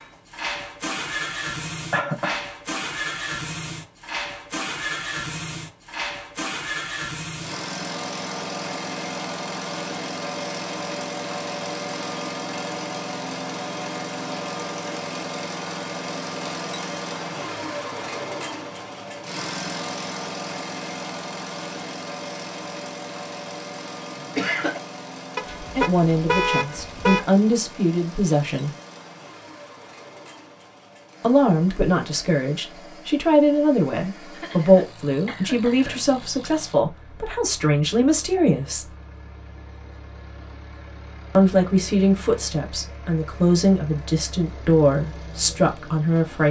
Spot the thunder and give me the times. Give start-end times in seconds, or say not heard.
not heard.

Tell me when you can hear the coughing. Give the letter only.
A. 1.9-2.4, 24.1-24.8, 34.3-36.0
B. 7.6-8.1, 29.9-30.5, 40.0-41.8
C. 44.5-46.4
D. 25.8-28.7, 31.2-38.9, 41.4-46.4
A.